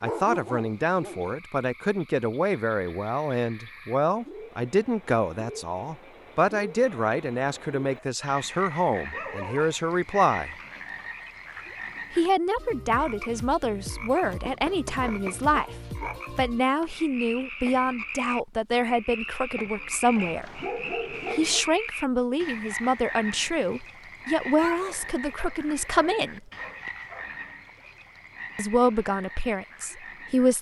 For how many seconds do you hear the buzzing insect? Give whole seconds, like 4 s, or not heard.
not heard.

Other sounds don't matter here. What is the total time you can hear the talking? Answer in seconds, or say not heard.
26 s.